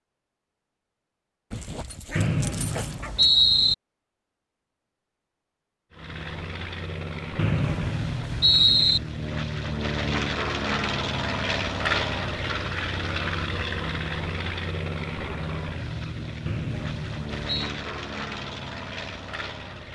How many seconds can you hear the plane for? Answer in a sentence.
The plane can be heard for 14 seconds in total.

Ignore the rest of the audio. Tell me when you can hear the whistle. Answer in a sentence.
You can hear the whistle from 2.1 to 3.8 s, from 7.3 to 9.0 s and from 16.4 to 17.8 s.